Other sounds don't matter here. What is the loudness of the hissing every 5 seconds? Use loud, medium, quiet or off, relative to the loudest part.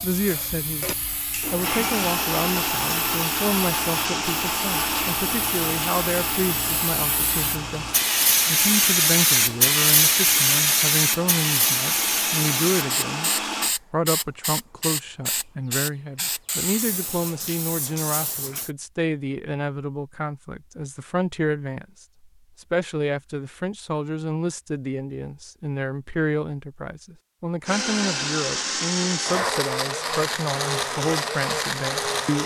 quiet, loud, loud, medium, off, off, off.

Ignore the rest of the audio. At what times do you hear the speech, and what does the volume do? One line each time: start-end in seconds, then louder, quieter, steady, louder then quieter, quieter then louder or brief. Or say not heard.
0.0-13.3 steady
13.9-32.4 steady.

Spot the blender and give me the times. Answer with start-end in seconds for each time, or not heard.
0.0-13.8, 27.6-32.4.